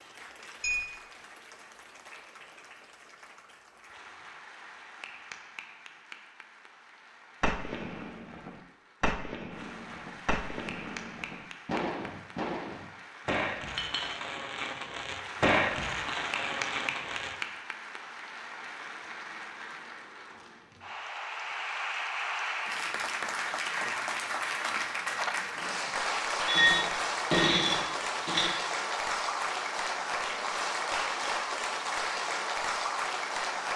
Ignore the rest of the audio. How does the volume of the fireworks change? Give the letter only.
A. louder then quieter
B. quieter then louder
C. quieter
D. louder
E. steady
D.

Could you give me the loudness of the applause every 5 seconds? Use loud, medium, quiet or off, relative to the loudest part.
quiet, quiet, quiet, medium, loud, loud, loud.